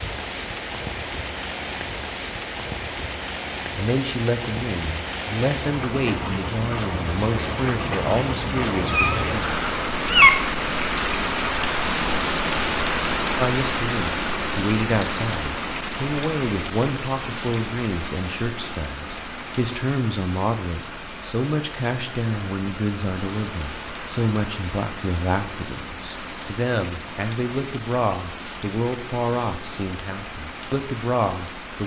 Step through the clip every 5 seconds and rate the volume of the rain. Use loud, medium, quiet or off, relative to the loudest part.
medium, medium, loud, medium, quiet, quiet, quiet.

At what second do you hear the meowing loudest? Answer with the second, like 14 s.
10 s.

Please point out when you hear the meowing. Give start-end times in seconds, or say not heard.
8.9-10.3.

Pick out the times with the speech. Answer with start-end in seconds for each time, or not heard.
3.8-9.6, 13.3-31.8.